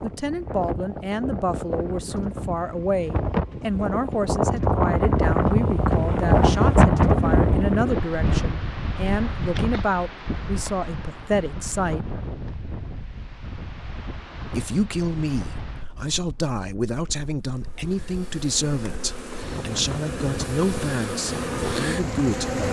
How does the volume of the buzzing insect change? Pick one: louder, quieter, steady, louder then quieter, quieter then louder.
louder.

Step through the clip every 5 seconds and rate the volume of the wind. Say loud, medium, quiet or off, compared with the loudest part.
medium, loud, quiet, quiet, quiet.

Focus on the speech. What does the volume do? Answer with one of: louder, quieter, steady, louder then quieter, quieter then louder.
steady.